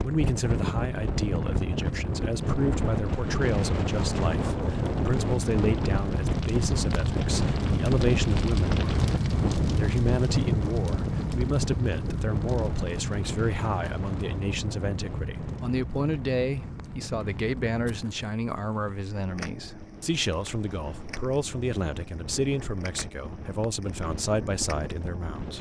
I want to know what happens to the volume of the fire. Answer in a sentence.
The volume of the fire goes up, then down.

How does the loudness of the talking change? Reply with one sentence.
The volume of the talking stays about the same.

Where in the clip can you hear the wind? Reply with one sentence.
You can hear the wind from 0.0 to 25.5 s.